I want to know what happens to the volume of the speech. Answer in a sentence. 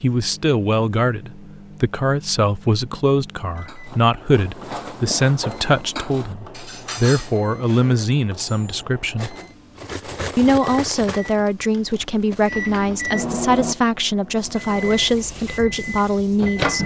The volume of the speech stays about the same.